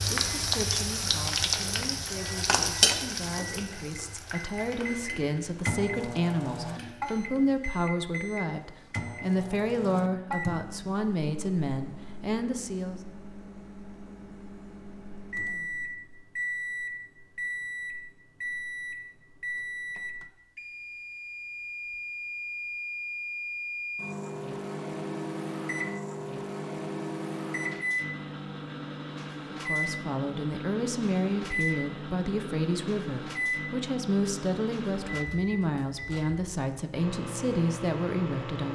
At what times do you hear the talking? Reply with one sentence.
You can hear the talking from 0.0 to 13.0 s and from 29.5 to 38.7 s.